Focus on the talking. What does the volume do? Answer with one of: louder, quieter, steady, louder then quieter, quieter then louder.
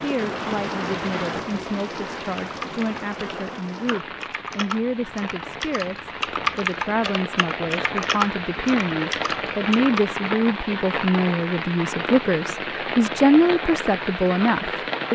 louder.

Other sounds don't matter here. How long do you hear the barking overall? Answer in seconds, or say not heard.
not heard.